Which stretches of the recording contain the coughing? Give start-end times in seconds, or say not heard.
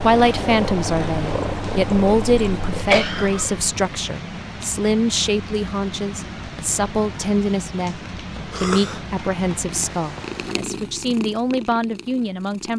2.7-3.5, 8.5-9.0.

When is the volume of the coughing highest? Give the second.
3 s.